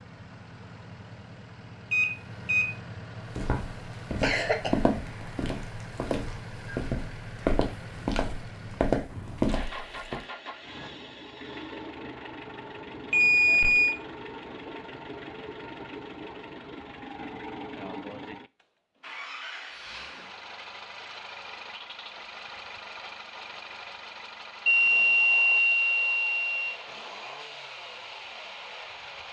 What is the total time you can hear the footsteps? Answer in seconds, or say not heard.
7 s.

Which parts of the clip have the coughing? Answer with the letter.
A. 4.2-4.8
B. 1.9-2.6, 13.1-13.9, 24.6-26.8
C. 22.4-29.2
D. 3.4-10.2
A.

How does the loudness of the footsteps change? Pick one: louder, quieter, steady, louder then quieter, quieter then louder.
quieter then louder.